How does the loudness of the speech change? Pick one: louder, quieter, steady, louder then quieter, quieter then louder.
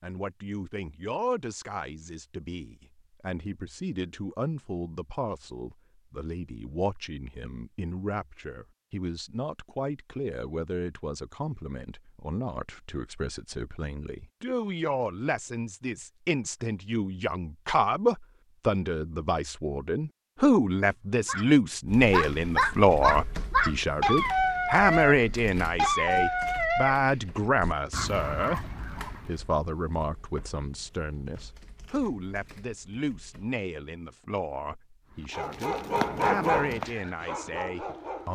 louder then quieter.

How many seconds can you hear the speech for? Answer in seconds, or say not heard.
38 s.